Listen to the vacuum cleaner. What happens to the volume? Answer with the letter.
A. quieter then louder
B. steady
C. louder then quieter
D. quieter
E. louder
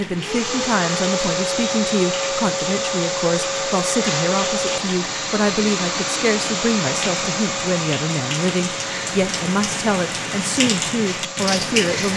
D.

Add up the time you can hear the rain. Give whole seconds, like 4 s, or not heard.
12 s.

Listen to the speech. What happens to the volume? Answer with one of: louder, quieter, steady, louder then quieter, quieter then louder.
steady.